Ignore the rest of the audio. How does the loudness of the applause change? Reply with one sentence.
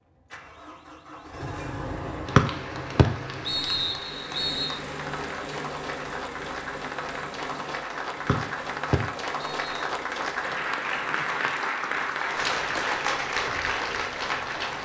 The volume of the applause goes up.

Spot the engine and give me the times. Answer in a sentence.
The engine can be heard from 0.0 to 14.8 s.